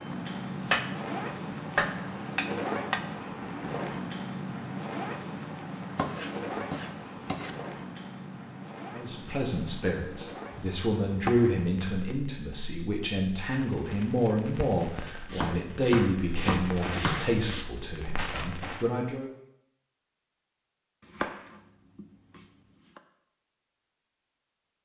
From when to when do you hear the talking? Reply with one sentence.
The talking can be heard from 8.9 to 19.3 s.